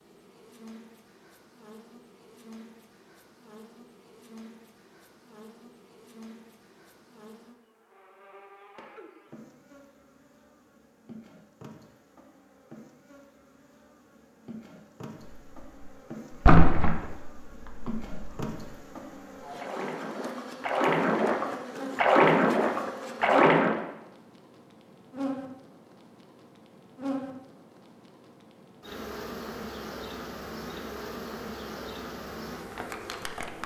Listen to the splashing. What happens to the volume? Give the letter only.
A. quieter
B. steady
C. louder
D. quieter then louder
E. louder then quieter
D.